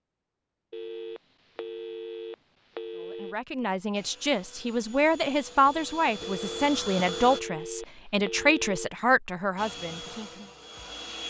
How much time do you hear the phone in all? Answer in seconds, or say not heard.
5 s.